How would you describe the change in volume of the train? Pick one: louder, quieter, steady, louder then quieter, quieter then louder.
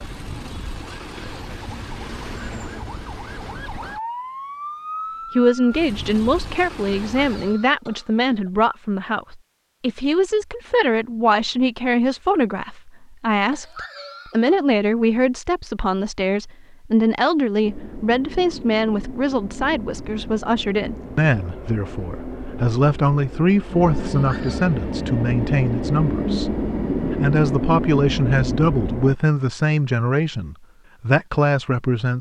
louder.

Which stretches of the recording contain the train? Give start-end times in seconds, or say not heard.
17.6-29.1.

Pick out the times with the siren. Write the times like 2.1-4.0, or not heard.
0.0-7.6.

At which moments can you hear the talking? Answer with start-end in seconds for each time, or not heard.
5.3-26.5, 27.1-32.1.